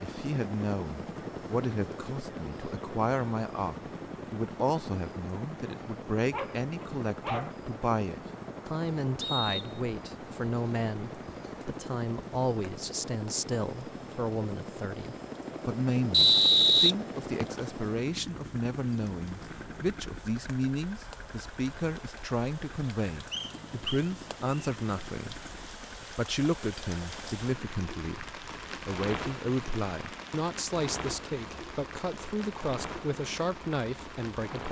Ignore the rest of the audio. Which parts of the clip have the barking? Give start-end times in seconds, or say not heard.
6.3-7.5.